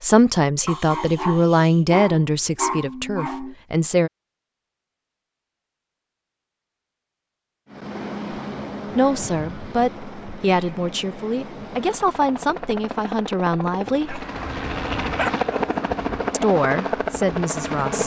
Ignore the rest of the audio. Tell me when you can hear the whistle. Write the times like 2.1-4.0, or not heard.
not heard.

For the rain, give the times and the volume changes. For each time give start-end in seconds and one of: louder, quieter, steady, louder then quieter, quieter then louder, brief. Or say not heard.
not heard.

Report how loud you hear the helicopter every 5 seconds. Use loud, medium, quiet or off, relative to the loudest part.
off, medium, medium, loud.